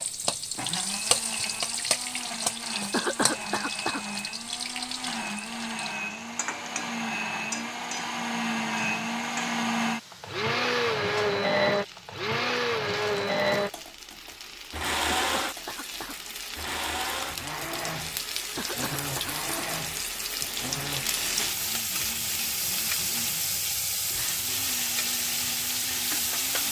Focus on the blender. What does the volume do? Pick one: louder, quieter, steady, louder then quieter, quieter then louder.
louder then quieter.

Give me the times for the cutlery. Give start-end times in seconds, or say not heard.
not heard.